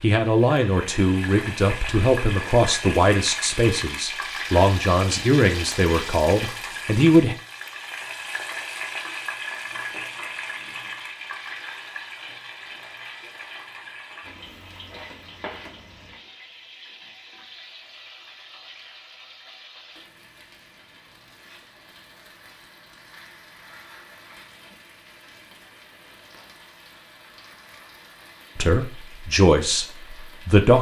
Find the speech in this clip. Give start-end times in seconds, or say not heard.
0.0-7.3, 28.6-30.7.